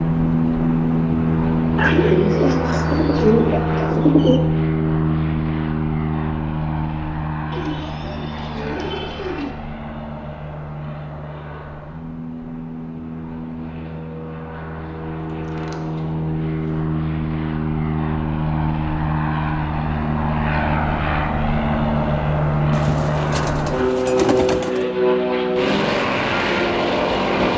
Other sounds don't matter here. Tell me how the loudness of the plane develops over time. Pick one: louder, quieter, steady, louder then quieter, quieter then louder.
quieter then louder.